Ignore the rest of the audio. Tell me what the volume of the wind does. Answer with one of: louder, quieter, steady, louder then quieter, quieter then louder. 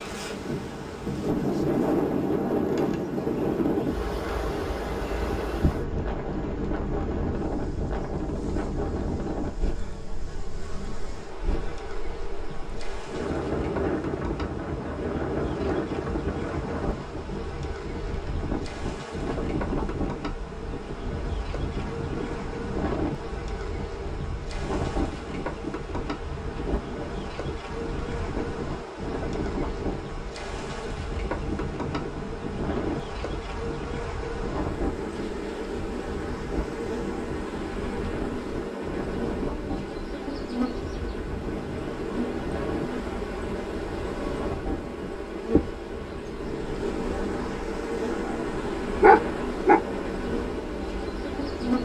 quieter.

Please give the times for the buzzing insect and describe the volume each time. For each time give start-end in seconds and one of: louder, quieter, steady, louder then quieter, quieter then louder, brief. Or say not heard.
0.0-51.8 louder.